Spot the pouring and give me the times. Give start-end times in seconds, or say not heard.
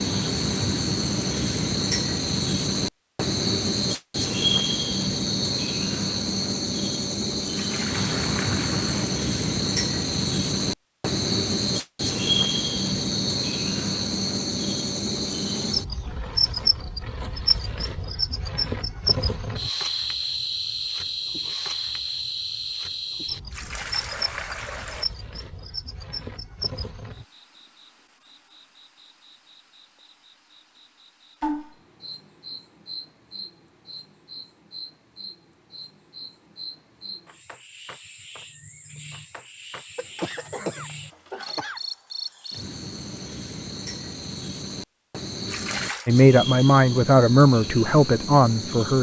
7.5-9.1, 23.5-25.1, 45.5-46.1.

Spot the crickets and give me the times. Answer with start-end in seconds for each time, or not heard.
0.0-48.9.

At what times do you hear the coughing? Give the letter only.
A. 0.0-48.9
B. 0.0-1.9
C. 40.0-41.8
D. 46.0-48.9
C.